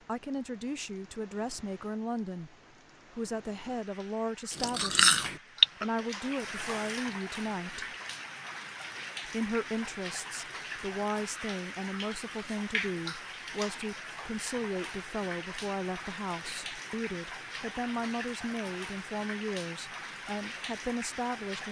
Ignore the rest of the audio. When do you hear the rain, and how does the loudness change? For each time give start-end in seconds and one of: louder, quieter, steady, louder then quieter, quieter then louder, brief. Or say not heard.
0.0-21.6 louder.